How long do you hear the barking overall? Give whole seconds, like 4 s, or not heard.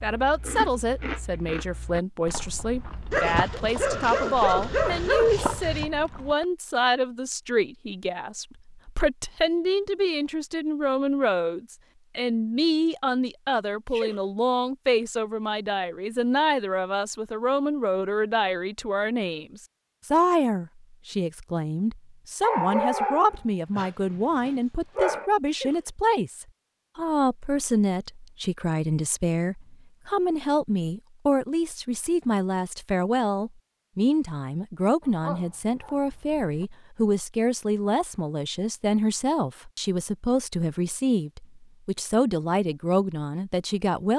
7 s.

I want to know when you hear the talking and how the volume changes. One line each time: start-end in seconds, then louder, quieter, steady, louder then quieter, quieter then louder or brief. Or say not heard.
0.0-44.1 steady.